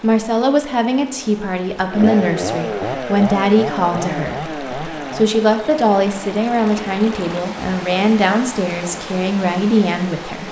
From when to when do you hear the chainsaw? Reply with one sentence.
You can hear the chainsaw from 1.9 to 5.3 s.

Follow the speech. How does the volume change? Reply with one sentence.
The volume of the speech stays about the same.